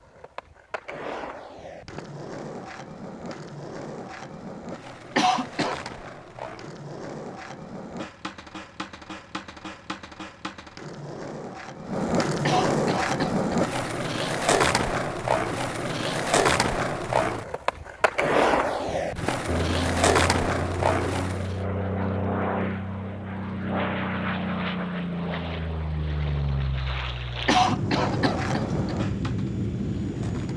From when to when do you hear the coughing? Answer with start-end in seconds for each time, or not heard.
5.2-5.8, 12.4-13.7, 27.4-28.9.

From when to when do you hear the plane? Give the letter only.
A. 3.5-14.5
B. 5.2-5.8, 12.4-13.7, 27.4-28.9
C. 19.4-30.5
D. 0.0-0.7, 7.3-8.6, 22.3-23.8
C.